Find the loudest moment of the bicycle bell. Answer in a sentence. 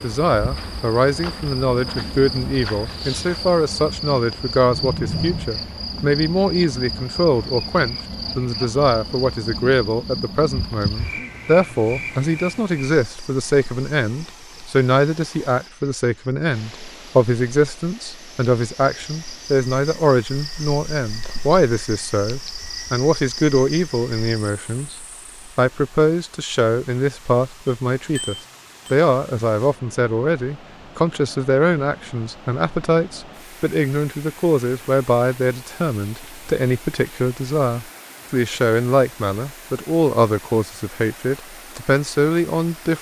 The loudest moment of the bicycle bell is at 5 seconds.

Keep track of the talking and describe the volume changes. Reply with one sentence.
The loudness of the talking stays about the same.